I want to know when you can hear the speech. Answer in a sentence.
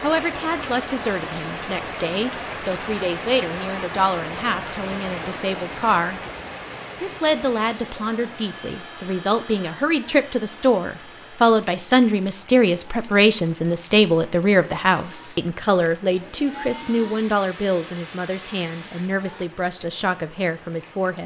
The speech can be heard from 0.0 to 6.2 s and from 7.0 to 21.2 s.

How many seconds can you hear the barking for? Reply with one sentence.
The barking can't be heard in this clip.